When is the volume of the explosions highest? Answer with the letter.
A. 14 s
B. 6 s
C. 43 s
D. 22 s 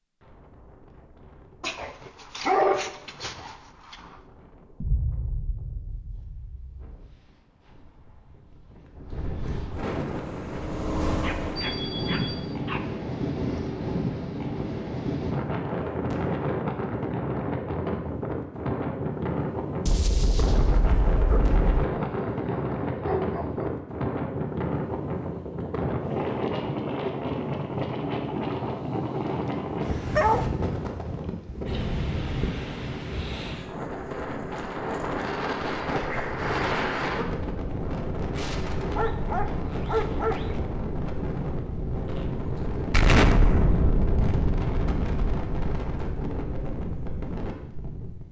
C.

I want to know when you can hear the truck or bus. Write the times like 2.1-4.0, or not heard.
10.1-12.6.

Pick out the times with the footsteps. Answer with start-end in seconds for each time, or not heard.
not heard.